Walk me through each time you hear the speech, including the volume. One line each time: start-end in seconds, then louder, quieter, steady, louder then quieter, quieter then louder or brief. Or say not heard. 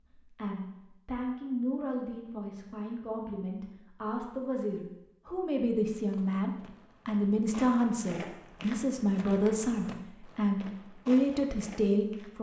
0.2-12.3 louder.